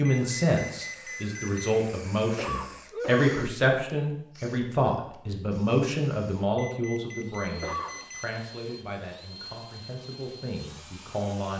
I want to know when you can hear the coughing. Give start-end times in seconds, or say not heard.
2.2-3.5, 7.5-8.1.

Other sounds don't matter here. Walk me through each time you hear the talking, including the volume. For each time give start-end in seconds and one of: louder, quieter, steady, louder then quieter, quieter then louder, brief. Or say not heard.
0.0-11.5 quieter.